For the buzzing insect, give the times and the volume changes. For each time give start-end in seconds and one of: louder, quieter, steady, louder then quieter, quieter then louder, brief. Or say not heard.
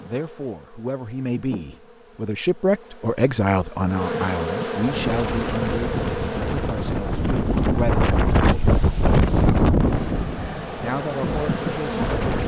0.0-12.4 louder.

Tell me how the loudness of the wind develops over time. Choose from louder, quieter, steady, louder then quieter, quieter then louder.
louder then quieter.